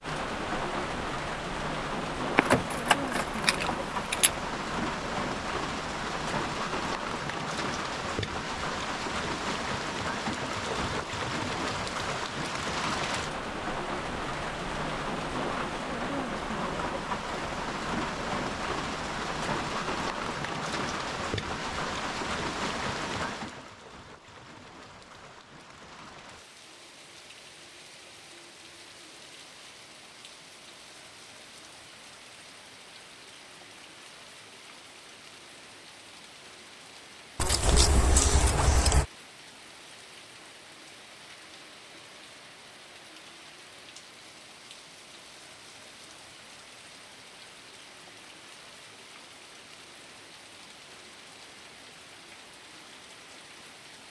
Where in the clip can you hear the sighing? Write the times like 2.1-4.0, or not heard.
not heard.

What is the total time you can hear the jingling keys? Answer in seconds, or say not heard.
4 s.